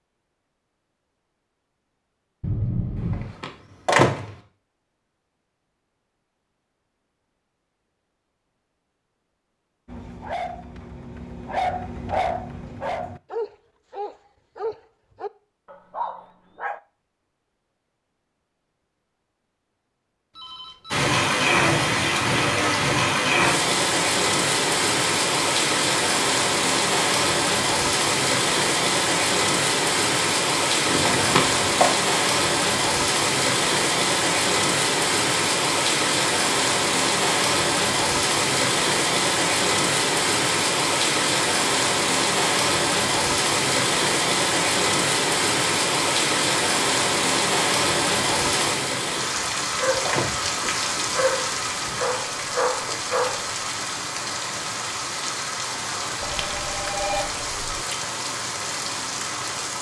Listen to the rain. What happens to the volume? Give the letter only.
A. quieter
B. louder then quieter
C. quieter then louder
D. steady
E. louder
A.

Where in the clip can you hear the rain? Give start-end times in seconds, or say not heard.
20.9-59.7.